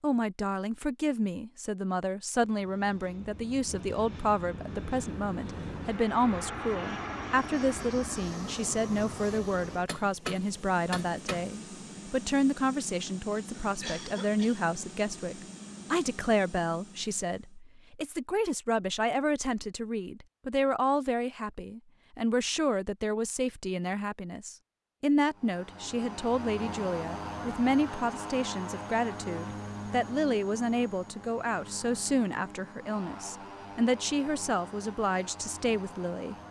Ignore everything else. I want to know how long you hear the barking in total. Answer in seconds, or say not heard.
not heard.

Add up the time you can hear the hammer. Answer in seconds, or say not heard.
2 s.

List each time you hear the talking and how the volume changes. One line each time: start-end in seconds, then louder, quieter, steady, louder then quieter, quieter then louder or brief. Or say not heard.
0.0-36.4 steady.